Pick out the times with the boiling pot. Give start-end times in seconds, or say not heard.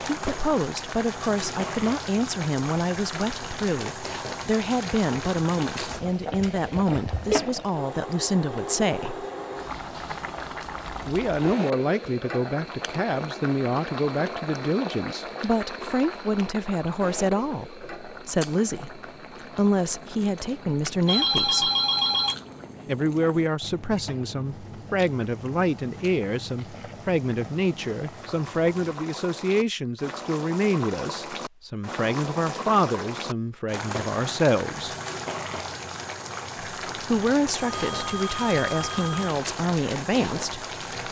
0.0-41.0.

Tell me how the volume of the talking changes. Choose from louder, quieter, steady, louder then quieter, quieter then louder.
steady.